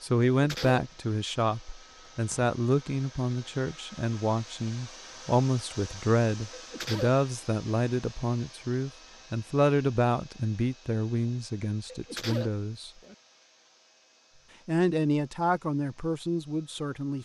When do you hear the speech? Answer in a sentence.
You can hear the speech from 0.0 to 12.9 s and from 14.7 to 17.2 s.